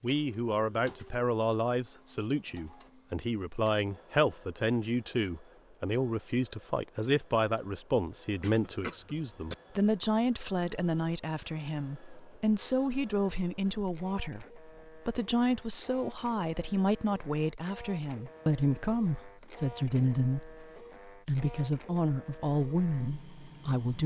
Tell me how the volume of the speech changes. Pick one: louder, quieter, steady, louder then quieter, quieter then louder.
steady.